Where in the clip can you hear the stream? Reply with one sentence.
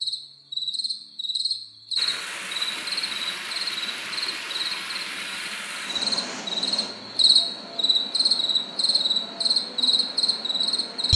You can hear the stream from 1.9 to 11.1 s.